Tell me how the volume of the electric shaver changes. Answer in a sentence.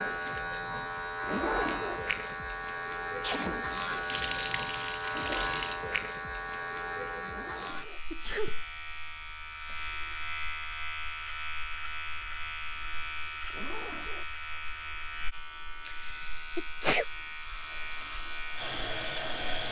The loudness of the electric shaver goes down.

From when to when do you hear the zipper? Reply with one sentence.
The zipper can be heard from 0.9 to 2.1 s, from 7.2 to 8.0 s and from 13.2 to 14.7 s.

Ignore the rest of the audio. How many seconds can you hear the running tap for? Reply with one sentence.
The running tap can be heard for 4 seconds in total.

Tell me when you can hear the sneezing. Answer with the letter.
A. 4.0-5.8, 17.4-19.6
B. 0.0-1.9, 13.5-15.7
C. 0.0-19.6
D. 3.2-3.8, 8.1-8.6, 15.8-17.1
D.